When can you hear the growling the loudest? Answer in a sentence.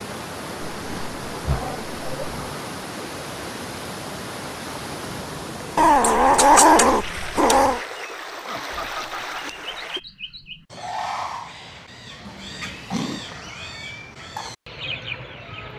The volume of the growling peaks at 7 seconds.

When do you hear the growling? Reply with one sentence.
The growling can be heard from 0.6 to 2.5 s, from 5.8 to 7.8 s and from 12.2 to 13.2 s.